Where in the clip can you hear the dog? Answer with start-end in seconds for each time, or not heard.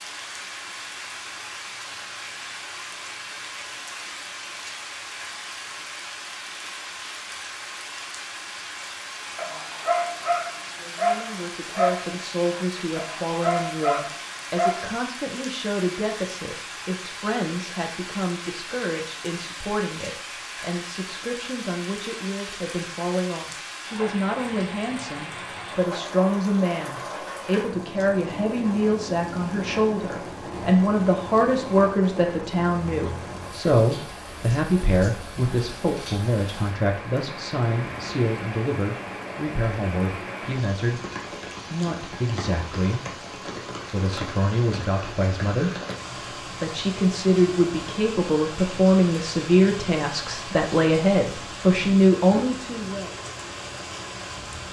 9.3-14.9.